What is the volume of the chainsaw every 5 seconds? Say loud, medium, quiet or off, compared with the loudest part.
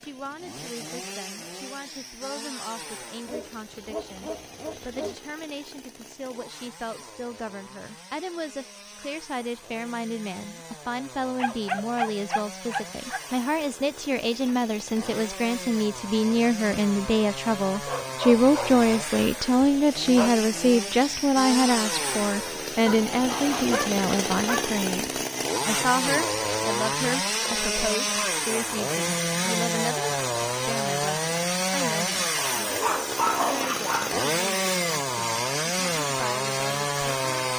quiet, quiet, quiet, medium, loud, loud, loud, loud.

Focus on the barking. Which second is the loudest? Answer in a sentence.
The loudest moment of the barking is at 33 seconds.